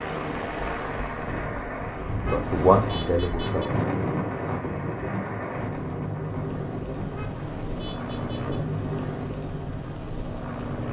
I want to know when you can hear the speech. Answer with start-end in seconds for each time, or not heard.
2.1-3.9.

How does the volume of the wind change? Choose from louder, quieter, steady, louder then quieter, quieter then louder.
louder then quieter.